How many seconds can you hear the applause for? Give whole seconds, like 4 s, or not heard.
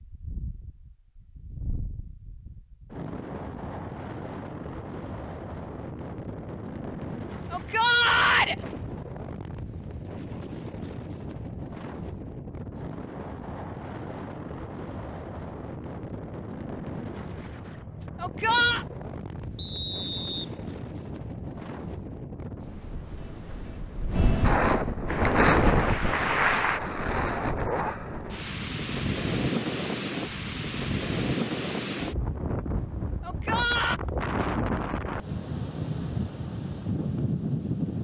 2 s.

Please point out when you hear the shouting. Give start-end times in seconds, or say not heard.
7.5-8.6, 18.2-18.9, 33.2-34.0.